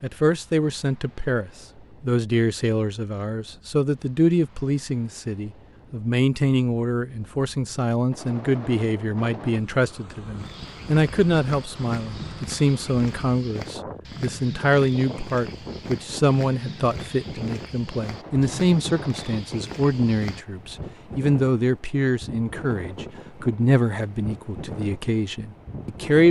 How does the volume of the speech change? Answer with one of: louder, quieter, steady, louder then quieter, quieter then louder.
steady.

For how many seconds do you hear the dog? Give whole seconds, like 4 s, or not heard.
not heard.